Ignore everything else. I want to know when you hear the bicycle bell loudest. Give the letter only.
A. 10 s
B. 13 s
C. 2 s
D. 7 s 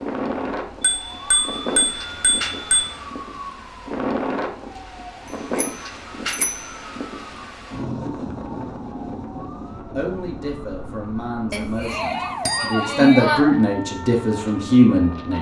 B.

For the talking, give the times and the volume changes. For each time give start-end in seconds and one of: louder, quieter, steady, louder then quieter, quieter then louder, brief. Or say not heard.
9.9-15.3 louder.